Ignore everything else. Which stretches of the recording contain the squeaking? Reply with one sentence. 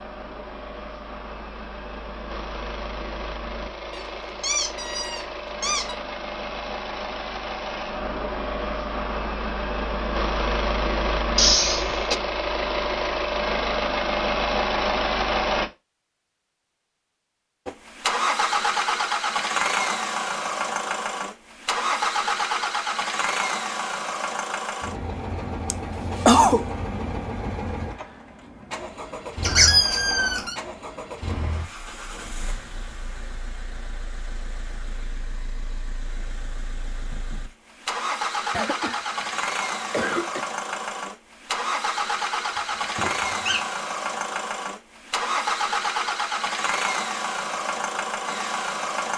The squeaking can be heard from 3.9 to 6.0 s, from 29.4 to 30.6 s and from 42.5 to 43.6 s.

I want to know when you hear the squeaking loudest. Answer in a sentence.
The volume of the squeaking peaks at 30 seconds.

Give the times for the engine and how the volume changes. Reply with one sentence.
You can hear the engine from 0.0 to 15.7 s, getting louder; and from 17.6 to 49.1 s, getting quieter then louder.